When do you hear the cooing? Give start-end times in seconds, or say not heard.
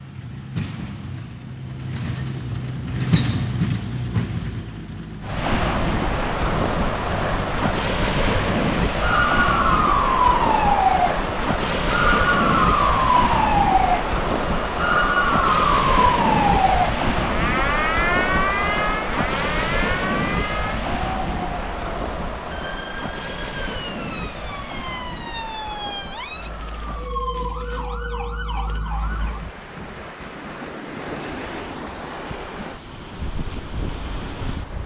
not heard.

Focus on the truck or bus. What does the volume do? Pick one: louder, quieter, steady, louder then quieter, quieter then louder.
louder then quieter.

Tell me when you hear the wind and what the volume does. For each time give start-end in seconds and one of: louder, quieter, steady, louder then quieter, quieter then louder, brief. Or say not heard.
5.2-34.8 quieter.